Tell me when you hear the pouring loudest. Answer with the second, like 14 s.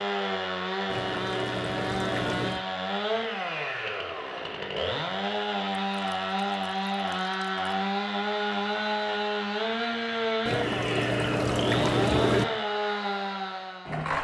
12 s.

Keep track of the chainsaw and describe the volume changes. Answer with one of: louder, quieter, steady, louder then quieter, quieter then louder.
steady.